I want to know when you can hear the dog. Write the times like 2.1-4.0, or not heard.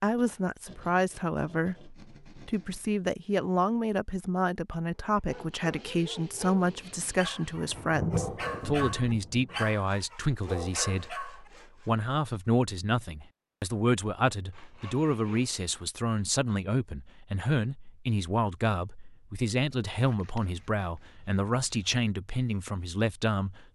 5.2-11.5.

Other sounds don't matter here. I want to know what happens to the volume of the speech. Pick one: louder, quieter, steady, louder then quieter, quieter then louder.
steady.